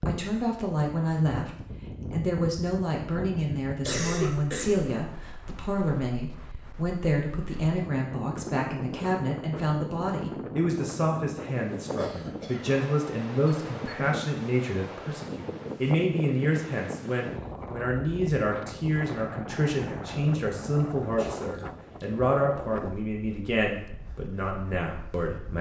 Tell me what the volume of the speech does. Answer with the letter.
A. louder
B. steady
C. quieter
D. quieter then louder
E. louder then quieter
B.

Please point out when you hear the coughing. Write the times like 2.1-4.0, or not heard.
3.4-4.8, 11.9-12.8, 20.8-22.1.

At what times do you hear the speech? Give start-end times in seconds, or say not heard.
0.1-25.5.